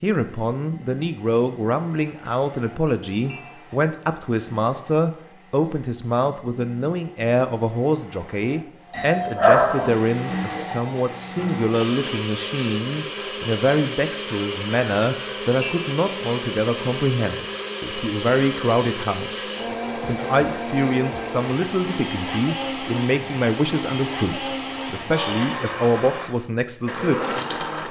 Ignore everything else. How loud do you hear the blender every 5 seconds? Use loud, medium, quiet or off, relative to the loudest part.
quiet, quiet, loud, loud, loud, loud.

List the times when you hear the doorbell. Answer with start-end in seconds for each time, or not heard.
8.9-9.9, 14.2-15.1.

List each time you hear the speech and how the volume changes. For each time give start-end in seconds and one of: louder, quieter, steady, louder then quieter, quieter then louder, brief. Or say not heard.
0.0-27.8 steady.